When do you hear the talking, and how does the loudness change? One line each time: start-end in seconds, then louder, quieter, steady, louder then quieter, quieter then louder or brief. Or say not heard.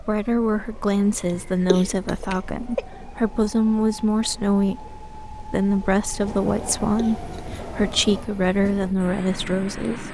0.0-10.1 steady.